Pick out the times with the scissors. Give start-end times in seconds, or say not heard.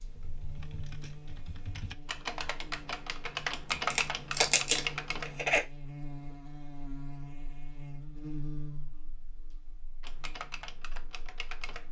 3.6-5.6.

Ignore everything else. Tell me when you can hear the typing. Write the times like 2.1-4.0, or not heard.
0.0-5.4, 10.0-11.8.